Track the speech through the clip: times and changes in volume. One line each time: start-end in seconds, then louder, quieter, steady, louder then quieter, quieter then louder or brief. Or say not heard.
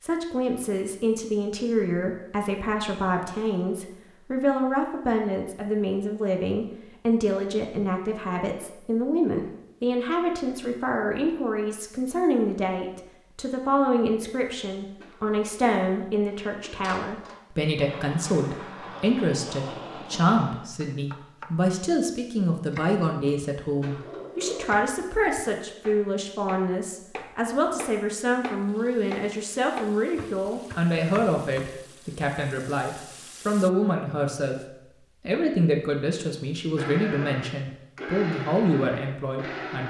0.0-39.8 steady.